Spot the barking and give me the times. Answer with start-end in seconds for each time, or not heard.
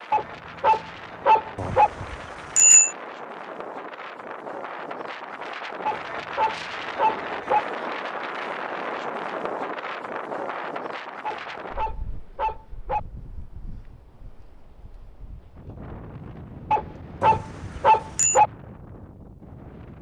0.1-1.9, 5.8-7.7, 11.2-13.0, 16.7-18.5.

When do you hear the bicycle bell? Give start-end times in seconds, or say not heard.
1.6-2.9, 17.2-18.4.